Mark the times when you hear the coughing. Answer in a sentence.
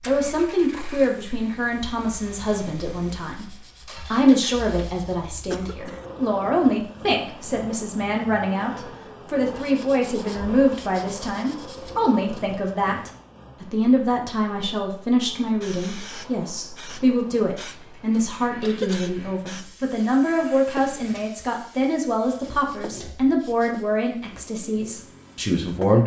You can hear the coughing from 5.5 to 6.0 s and from 18.6 to 19.1 s.